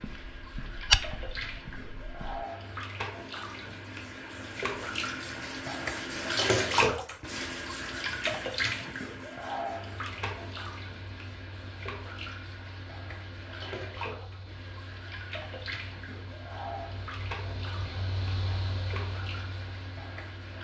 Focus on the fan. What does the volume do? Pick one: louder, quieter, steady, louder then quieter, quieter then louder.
louder.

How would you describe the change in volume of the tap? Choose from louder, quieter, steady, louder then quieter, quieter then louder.
louder then quieter.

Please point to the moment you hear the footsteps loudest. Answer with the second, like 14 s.
1 s.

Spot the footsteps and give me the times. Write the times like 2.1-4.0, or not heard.
0.0-2.5.